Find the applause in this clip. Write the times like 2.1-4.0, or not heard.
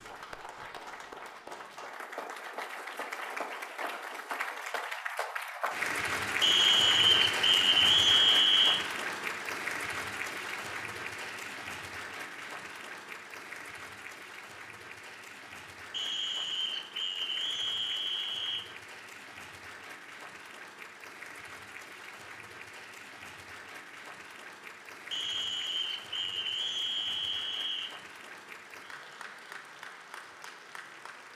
0.0-31.3.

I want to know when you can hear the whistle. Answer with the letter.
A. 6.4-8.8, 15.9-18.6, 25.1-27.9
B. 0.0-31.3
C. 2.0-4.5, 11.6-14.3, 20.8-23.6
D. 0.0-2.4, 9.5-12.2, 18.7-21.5
A.